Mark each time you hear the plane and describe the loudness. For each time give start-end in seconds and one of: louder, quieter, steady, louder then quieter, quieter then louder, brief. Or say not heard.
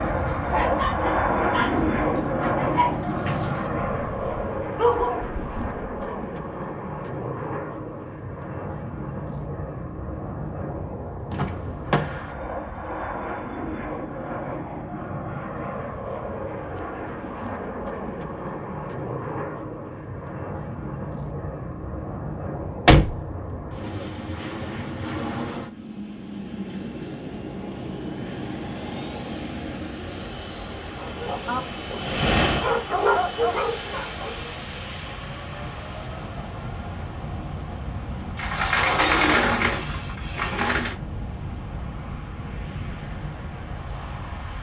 0.0-44.5 quieter.